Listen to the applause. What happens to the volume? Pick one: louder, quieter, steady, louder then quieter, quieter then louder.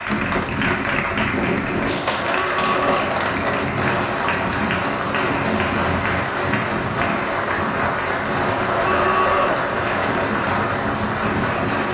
steady.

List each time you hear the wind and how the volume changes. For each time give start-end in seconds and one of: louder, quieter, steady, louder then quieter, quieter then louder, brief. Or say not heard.
0.0-11.8 steady.